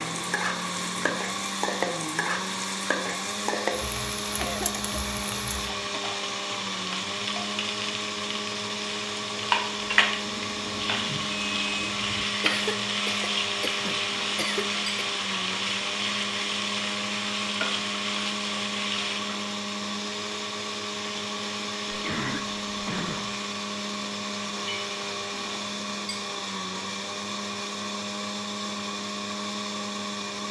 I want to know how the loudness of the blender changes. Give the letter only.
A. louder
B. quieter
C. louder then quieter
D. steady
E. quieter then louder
D.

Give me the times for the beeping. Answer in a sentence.
You can hear the beeping from 10.2 to 12.2 s.